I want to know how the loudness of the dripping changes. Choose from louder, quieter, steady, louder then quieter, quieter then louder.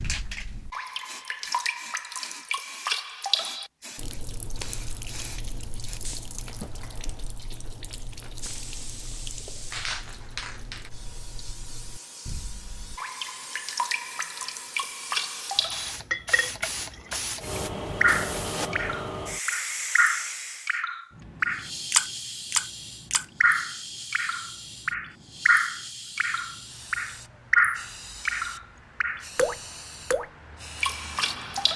quieter then louder.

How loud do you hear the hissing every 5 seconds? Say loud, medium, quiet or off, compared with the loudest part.
medium, medium, medium, loud, medium, medium, medium.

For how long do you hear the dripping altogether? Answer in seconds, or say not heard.
31 s.